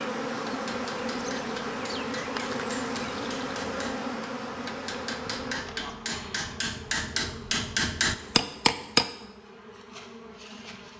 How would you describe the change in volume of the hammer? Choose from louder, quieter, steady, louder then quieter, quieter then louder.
louder.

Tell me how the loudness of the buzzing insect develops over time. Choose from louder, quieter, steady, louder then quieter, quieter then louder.
quieter.